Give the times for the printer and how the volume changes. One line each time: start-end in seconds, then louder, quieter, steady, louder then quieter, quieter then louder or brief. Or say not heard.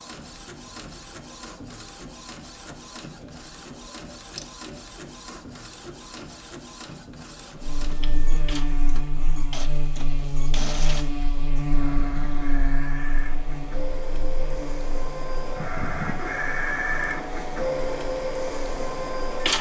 0.0-19.5 louder.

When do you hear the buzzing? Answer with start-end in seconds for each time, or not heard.
7.6-19.5.